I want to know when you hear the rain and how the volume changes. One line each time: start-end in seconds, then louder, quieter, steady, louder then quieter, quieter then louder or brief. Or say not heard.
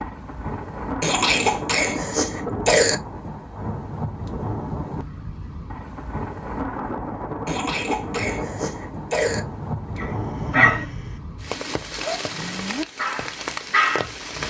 0.0-14.4 steady.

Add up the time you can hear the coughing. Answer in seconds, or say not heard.
4 s.